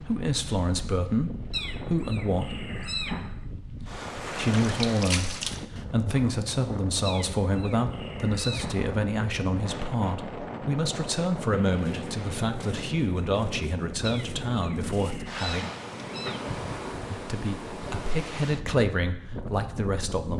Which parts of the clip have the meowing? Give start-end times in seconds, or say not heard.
1.5-3.4, 7.0-8.9, 14.0-16.4.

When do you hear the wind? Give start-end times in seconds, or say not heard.
0.0-20.3.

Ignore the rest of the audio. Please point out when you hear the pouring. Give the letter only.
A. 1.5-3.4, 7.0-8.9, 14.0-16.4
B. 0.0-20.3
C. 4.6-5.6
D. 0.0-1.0
C.